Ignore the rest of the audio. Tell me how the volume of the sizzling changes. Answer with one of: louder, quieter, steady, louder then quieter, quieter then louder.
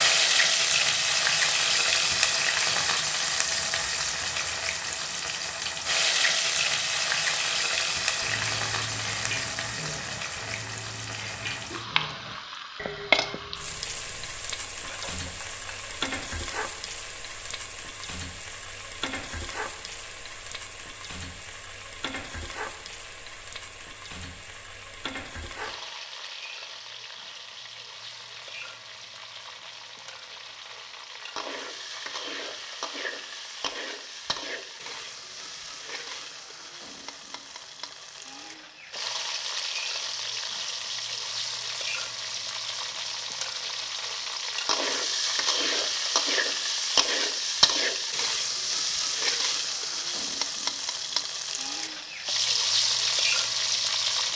quieter then louder.